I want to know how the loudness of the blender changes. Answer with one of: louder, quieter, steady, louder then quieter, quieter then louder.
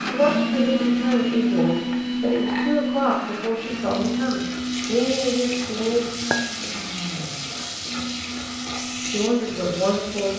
quieter.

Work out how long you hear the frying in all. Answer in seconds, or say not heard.
7 s.